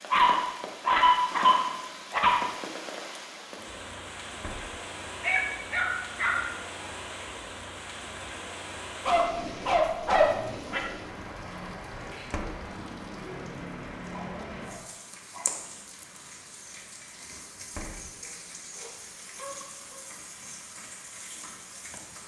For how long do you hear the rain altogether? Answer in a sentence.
The rain can be heard for 22 seconds in total.